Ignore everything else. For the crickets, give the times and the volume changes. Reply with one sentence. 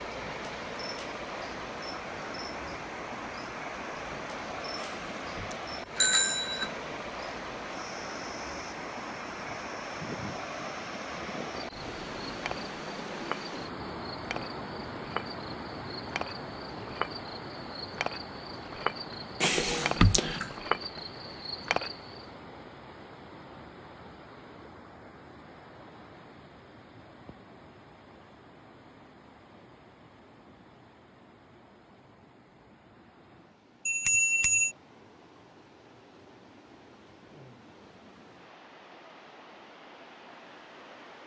You can hear the crickets from 0.0 to 22.2 s, getting louder.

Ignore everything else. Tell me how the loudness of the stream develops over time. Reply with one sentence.
The volume of the stream goes down.